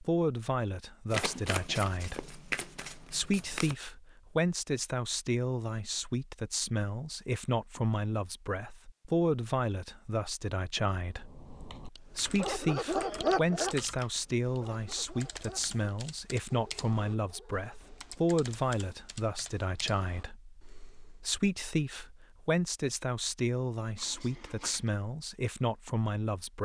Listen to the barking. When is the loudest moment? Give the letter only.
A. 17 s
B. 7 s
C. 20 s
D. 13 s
D.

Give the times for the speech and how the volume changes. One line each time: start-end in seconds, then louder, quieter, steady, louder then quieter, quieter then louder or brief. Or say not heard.
0.0-26.5 steady.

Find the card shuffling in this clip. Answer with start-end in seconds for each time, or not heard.
1.1-3.8, 23.9-24.9.